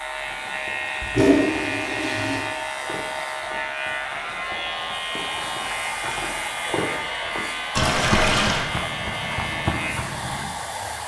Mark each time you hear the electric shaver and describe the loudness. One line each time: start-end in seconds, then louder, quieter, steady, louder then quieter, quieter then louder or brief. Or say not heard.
0.0-11.0 steady.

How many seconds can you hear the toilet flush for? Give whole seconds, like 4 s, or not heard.
2 s.